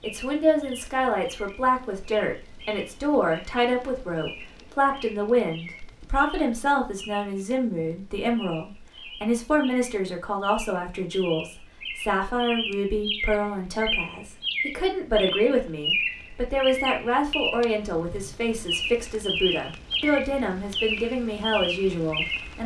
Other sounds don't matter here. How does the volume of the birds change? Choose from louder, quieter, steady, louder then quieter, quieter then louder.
louder.